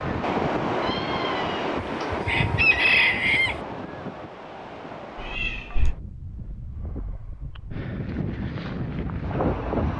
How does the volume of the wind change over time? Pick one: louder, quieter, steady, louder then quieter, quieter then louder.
quieter then louder.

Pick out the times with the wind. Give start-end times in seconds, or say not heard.
0.0-9.9.